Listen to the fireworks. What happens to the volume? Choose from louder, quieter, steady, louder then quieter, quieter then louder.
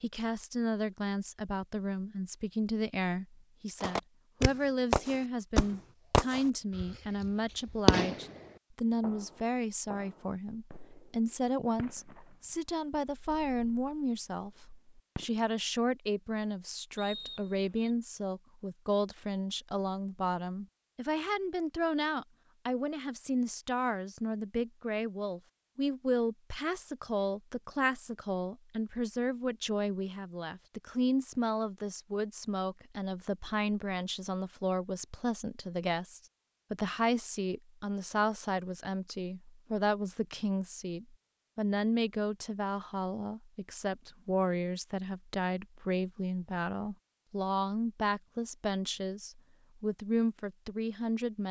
quieter then louder.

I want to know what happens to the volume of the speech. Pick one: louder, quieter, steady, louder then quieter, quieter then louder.
steady.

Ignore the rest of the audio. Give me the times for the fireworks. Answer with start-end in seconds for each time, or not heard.
3.8-8.3, 9.0-15.4.